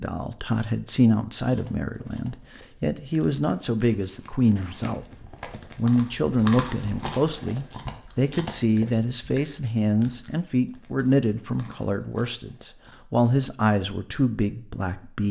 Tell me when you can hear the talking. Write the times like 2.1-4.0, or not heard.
0.0-5.0, 5.8-15.2.